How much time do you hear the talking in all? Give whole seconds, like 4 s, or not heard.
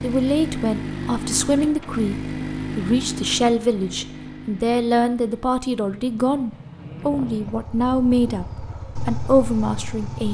10 s.